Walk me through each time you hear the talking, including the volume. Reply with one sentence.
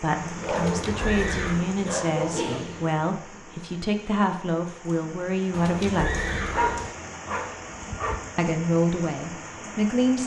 You can hear the talking from 0.0 to 6.3 s, at a steady volume; and briefly from 8.3 to 10.2 s.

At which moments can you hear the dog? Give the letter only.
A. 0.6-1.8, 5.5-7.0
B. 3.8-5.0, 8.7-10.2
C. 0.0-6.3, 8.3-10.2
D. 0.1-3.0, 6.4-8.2
D.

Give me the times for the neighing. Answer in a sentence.
You can hear the neighing from 0.6 to 1.8 s and from 5.5 to 7.0 s.